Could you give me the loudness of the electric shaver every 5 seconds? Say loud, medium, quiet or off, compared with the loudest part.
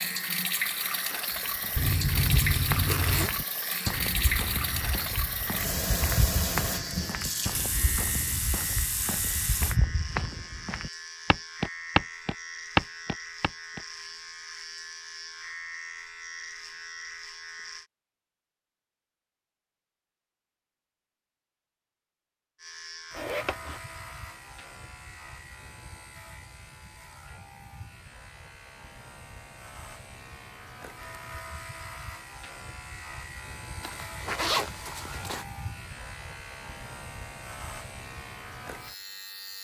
loud, loud, loud, loud, loud, medium, loud, loud.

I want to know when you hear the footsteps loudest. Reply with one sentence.
The loudest moment of the footsteps is at 13 seconds.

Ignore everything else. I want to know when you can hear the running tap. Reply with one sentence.
The running tap can be heard from 0.0 to 9.8 s.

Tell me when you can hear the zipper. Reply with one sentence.
You can hear the zipper from 1.8 to 3.3 s, from 23.1 to 23.8 s and from 33.8 to 35.5 s.